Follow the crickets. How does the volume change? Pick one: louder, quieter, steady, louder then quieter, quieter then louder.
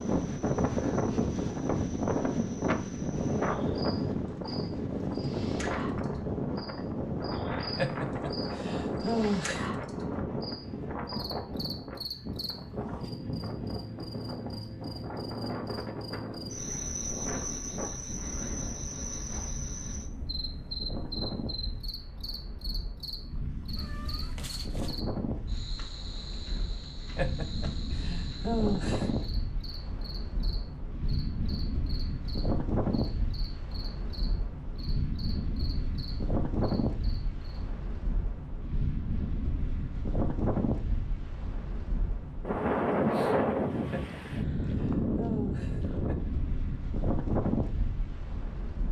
louder then quieter.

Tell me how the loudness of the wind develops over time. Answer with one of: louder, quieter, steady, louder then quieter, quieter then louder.
quieter then louder.